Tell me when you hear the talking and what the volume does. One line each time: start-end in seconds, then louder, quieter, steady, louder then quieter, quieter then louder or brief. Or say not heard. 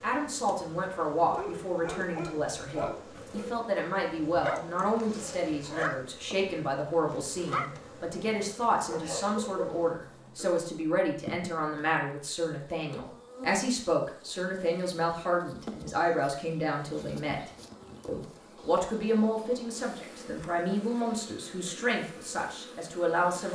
0.0-23.4 steady.